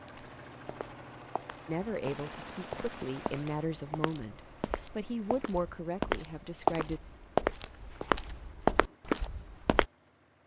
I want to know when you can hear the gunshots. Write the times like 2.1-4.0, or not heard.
2.0-3.6.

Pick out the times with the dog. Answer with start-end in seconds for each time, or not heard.
not heard.